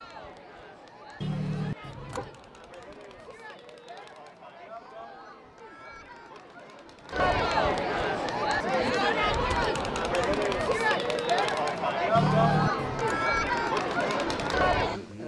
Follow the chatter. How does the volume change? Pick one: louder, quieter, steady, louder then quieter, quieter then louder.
louder.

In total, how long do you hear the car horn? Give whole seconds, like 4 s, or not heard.
2 s.